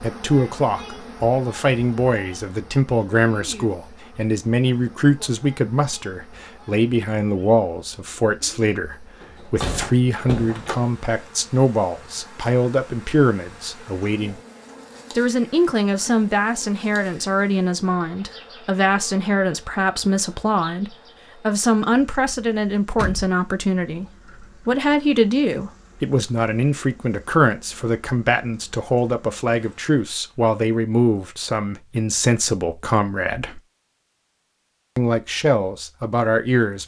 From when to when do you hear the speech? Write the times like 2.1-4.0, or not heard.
0.0-14.4, 15.2-33.6, 35.0-36.8.